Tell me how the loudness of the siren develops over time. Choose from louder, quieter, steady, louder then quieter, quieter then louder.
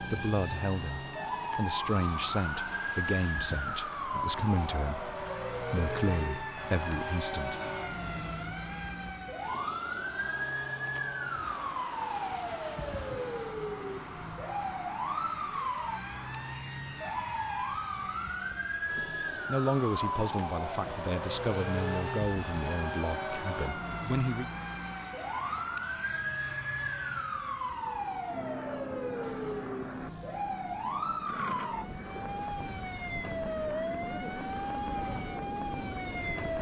steady.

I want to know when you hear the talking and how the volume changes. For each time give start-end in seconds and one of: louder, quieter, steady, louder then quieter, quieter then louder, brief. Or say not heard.
0.0-7.6 steady
19.4-24.5 quieter.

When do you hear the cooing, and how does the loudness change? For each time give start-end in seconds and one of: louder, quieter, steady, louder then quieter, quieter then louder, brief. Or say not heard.
not heard.